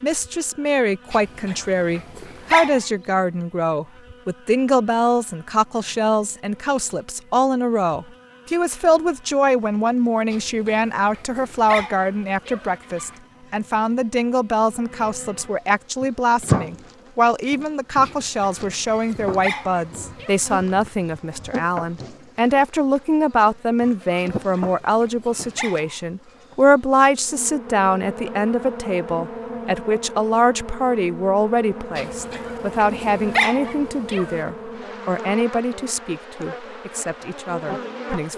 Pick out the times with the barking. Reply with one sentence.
The barking can be heard from 1.1 to 2.9 s, from 10.3 to 13.2 s, from 18.0 to 20.4 s, from 24.4 to 25.9 s and from 31.9 to 34.5 s.